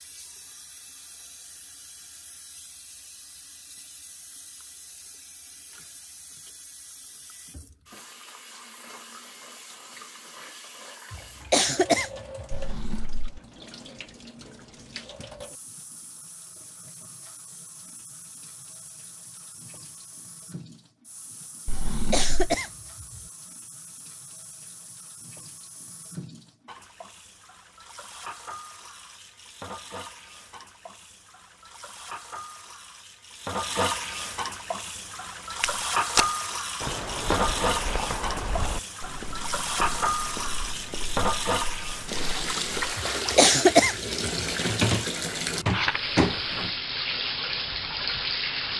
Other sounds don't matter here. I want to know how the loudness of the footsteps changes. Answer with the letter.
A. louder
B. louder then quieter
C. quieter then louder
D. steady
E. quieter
E.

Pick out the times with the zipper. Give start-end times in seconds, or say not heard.
not heard.